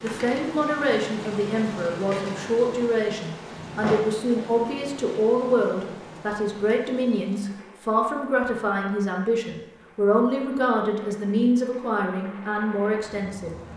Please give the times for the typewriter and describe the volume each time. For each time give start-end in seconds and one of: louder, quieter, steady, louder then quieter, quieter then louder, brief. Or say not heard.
not heard.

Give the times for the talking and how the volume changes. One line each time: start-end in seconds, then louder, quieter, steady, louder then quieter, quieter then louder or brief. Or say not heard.
0.0-13.5 steady.